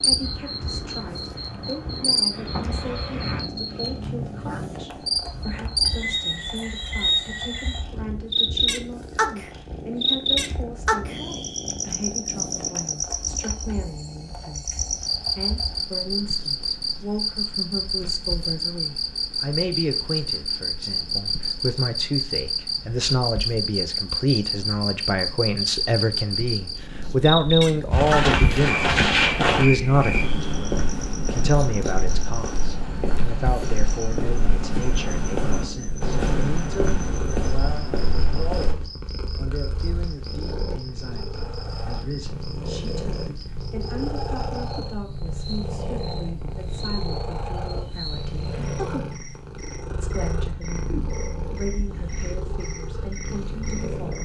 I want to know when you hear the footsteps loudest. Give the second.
29 s.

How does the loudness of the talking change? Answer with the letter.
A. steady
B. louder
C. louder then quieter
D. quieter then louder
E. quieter
C.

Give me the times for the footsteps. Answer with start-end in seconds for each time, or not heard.
27.9-38.8.